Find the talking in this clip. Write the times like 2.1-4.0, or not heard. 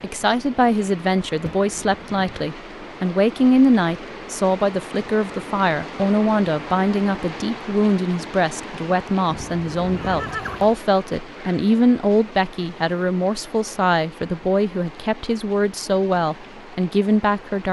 0.0-17.6.